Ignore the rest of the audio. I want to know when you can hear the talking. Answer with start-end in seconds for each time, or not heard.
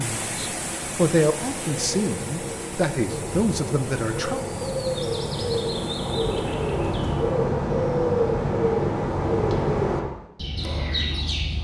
0.0-4.5.